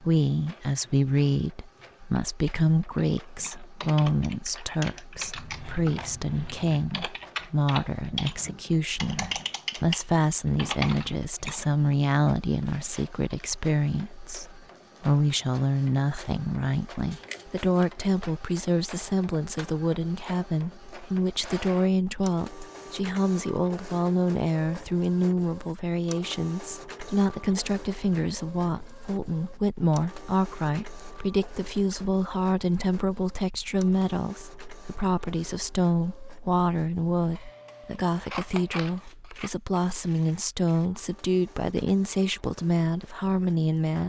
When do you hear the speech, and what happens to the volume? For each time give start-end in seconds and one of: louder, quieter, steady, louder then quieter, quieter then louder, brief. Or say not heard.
0.0-44.0 steady.